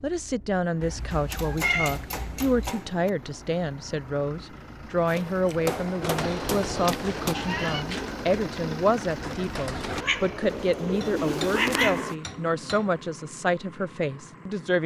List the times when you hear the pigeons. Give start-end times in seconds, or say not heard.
5.5-12.2.